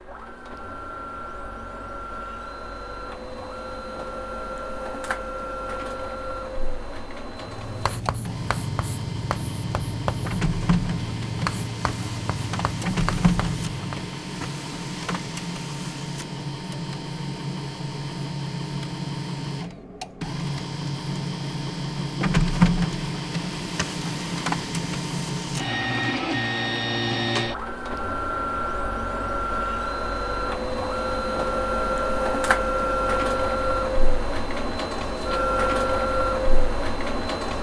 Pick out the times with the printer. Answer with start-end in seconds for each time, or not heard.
0.0-37.5.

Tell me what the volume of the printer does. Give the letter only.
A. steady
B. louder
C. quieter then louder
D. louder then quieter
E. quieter
B.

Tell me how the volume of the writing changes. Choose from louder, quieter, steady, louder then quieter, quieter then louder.
steady.